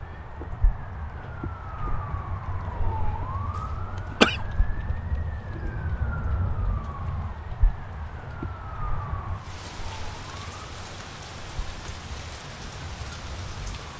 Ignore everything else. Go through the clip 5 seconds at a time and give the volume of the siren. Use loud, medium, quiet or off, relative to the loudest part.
loud, loud, medium.